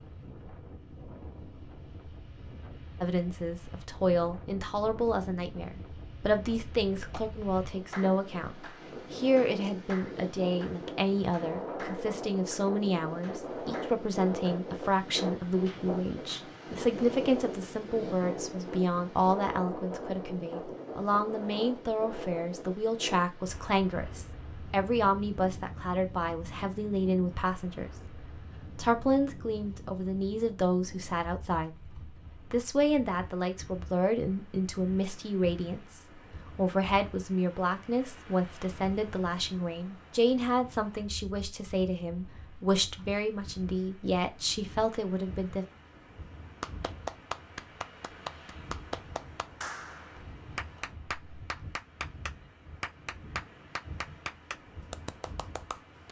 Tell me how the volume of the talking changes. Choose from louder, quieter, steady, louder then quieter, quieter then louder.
steady.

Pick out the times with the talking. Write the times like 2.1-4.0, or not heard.
3.0-27.9, 28.8-45.6.